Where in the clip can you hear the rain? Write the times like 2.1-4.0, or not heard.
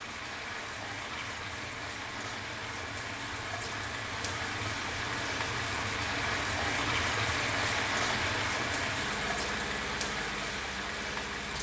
0.0-11.5.